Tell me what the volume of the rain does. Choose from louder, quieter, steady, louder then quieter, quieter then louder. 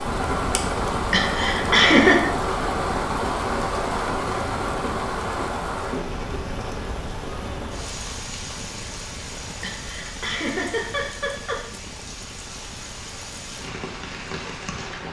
quieter.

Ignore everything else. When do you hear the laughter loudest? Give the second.
2 s.